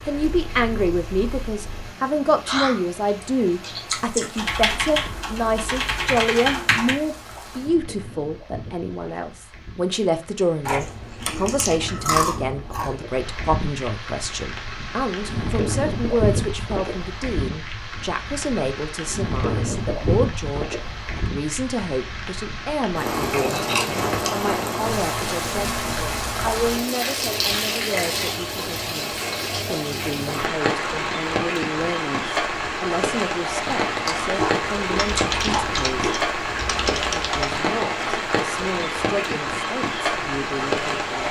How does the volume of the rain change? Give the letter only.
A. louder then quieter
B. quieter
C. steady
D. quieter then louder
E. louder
E.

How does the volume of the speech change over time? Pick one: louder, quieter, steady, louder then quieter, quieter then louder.
quieter.